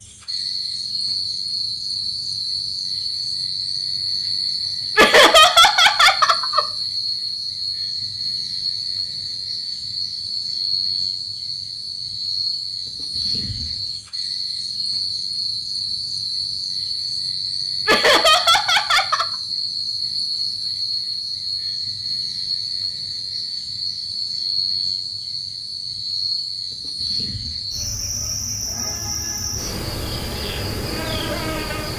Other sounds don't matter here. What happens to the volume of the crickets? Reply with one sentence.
The volume of the crickets stays about the same.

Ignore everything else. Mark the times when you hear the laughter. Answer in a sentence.
You can hear the laughter from 5.0 to 6.7 s and from 17.9 to 19.2 s.